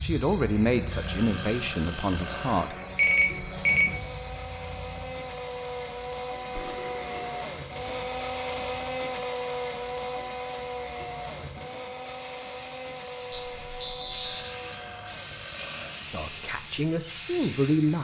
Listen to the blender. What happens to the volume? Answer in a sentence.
The volume of the blender goes up, then down.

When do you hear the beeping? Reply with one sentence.
The beeping can be heard from 3.0 to 3.9 s and from 13.3 to 14.5 s.